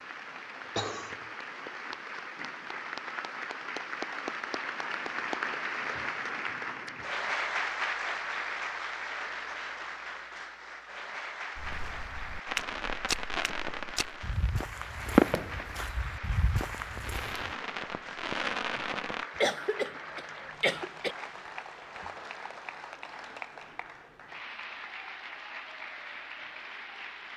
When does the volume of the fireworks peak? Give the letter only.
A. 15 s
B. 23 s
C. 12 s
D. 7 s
A.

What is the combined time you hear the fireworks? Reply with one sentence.
The fireworks can be heard for 7 seconds in total.